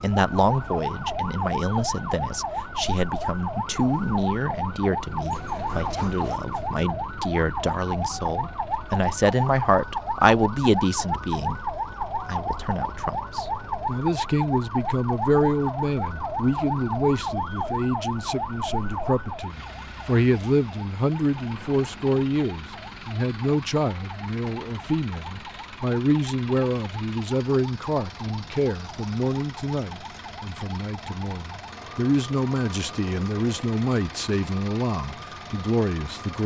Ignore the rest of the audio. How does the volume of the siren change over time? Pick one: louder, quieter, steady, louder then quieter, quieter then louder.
quieter.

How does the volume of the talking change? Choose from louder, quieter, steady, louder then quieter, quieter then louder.
steady.